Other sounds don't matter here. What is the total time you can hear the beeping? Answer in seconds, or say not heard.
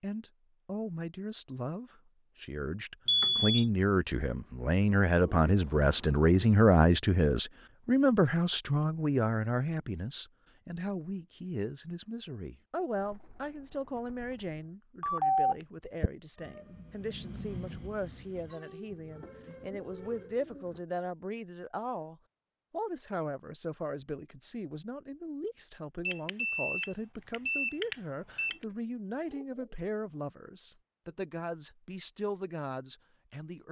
4 s.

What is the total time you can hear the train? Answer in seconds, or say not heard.
4 s.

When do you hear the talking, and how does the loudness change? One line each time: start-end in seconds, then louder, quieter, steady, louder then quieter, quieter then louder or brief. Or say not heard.
0.0-33.6 quieter.